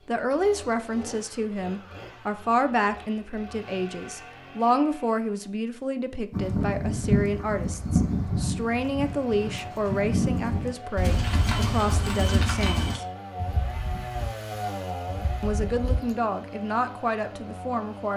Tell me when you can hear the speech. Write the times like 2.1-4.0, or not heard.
0.1-13.1, 15.4-18.1.